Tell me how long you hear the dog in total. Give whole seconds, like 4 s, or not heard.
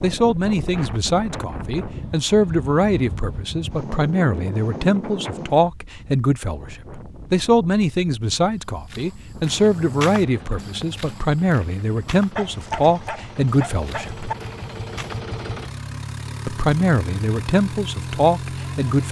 2 s.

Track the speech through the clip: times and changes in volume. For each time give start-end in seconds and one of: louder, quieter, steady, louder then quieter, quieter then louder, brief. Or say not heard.
0.0-14.3 steady
16.4-19.0 brief.